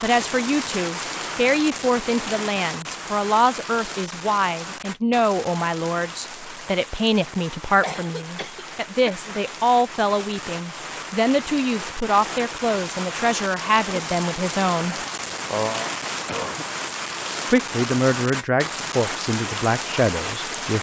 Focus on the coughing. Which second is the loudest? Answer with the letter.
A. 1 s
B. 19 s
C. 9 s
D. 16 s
D.